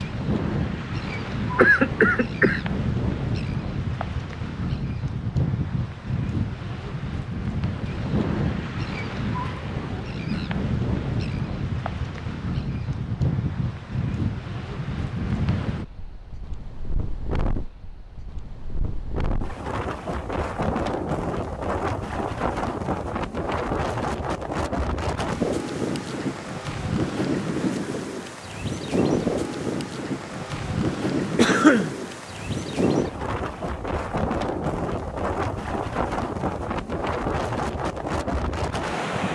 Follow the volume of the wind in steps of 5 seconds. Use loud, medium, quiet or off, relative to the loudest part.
loud, loud, loud, medium, loud, loud, loud, loud.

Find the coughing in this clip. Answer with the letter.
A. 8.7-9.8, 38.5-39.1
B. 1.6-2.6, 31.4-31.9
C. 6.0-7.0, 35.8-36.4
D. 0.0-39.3
B.